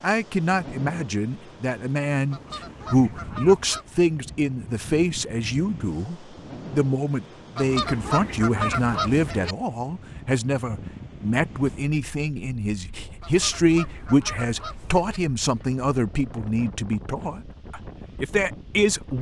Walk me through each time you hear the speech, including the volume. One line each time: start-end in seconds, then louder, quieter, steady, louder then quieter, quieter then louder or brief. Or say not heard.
0.0-19.1 steady.